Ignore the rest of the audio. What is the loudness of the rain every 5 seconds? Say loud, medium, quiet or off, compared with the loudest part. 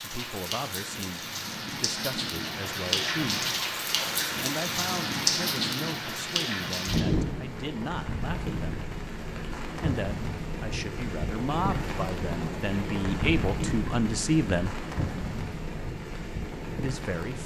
loud, loud, loud, medium.